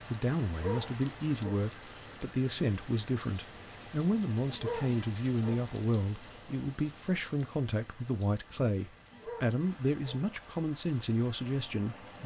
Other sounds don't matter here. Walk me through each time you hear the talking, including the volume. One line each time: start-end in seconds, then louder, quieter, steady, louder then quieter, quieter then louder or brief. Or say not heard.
0.1-12.2 steady.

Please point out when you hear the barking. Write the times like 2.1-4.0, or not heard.
0.5-1.6, 4.5-5.7, 9.1-10.2.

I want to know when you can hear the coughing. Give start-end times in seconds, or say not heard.
not heard.